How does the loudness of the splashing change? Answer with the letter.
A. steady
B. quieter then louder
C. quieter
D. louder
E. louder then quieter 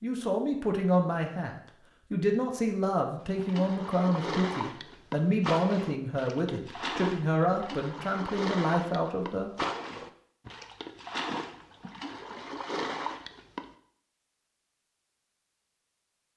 A.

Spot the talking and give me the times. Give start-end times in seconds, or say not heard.
0.0-9.5.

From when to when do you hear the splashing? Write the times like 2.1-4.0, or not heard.
3.2-13.7.